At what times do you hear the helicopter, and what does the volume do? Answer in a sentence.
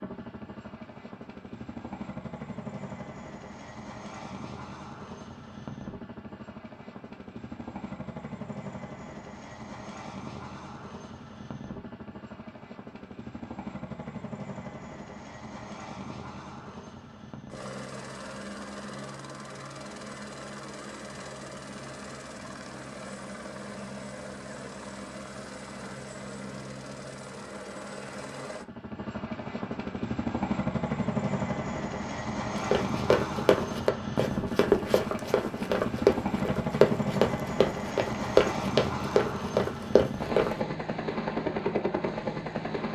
The helicopter can be heard from 0.0 to 42.9 s, getting louder.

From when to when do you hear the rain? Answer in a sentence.
You can't hear the rain here.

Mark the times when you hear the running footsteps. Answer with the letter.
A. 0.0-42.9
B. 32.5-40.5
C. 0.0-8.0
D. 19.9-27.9
B.